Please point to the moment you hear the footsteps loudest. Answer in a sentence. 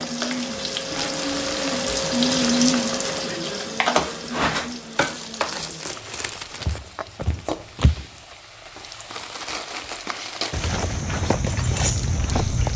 The loudest moment of the footsteps is at 12 seconds.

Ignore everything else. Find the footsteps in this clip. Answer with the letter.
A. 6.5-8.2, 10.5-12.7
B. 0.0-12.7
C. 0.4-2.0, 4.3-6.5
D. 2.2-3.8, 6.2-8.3
A.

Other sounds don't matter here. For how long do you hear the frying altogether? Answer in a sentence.
The frying can be heard for 13 seconds in total.